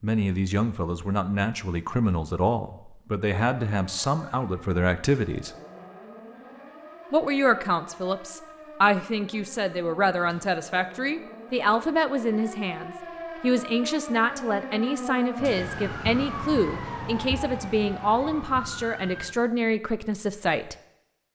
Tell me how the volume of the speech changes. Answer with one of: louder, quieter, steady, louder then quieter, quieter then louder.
steady.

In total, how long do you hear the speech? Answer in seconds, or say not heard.
19 s.